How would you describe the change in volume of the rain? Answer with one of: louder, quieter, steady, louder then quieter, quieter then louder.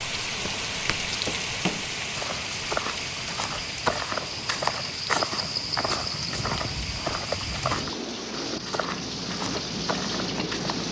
quieter then louder.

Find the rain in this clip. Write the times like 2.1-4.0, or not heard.
0.0-10.8.